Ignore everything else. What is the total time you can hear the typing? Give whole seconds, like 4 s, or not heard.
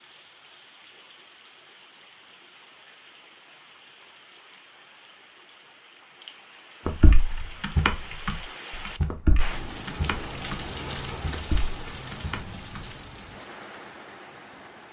6 s.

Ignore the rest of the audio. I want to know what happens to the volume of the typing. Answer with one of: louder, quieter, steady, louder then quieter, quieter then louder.
quieter.